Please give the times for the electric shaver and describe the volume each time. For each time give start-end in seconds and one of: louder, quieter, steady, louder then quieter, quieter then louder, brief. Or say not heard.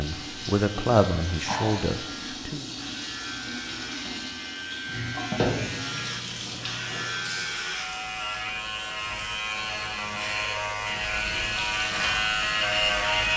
0.0-13.3 louder.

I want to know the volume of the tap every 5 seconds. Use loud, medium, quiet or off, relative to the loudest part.
loud, loud, medium.